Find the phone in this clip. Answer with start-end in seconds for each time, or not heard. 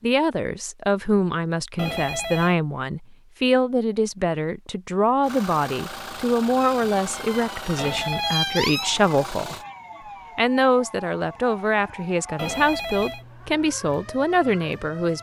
1.8-2.5, 7.8-8.4, 12.3-13.2.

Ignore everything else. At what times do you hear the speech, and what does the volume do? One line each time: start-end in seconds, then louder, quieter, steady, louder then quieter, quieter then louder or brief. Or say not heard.
0.0-9.6 steady
10.3-15.1 steady.